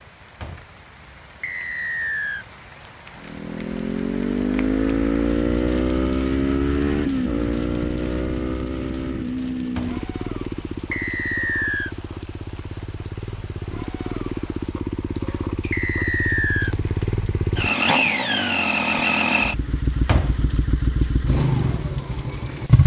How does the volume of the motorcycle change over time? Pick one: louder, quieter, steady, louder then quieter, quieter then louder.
quieter then louder.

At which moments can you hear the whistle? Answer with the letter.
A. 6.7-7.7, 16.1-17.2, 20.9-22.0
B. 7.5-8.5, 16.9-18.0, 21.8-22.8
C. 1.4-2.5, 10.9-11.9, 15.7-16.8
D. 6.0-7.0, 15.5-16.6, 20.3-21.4
C.